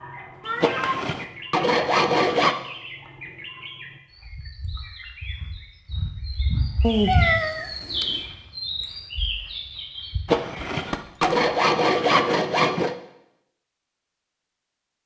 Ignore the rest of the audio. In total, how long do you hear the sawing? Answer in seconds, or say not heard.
5 s.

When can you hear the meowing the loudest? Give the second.
7 s.